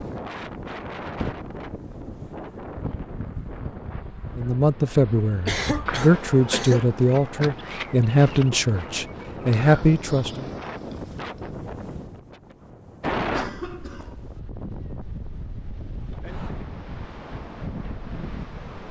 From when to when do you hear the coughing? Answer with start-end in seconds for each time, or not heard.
5.5-6.8, 13.2-14.4.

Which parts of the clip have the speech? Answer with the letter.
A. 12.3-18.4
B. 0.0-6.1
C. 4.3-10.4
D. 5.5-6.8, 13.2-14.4
C.